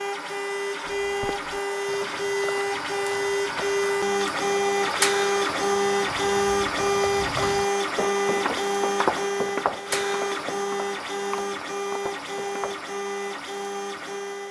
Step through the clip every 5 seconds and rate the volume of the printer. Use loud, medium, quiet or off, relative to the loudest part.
loud, loud, medium.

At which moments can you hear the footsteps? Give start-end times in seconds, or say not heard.
0.9-12.8.